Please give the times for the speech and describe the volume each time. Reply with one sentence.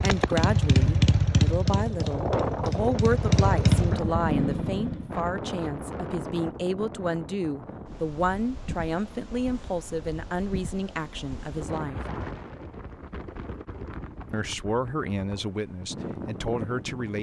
You can hear the speech from 0.0 to 12.0 s, at a steady volume; and briefly from 14.3 to 17.1 s.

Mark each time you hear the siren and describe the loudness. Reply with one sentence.
You can't hear the siren here.